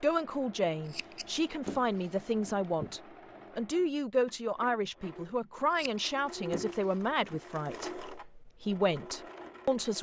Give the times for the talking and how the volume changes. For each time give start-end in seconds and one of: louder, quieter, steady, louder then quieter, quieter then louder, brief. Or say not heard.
0.0-9.9 steady.